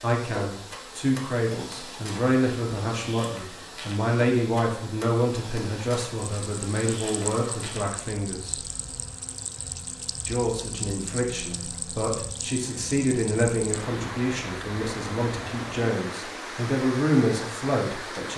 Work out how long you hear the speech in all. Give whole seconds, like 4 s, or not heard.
17 s.